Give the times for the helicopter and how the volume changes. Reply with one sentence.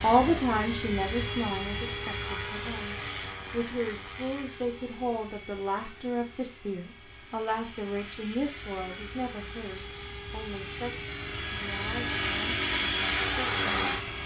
The helicopter can be heard from 0.0 to 14.2 s, getting quieter then louder.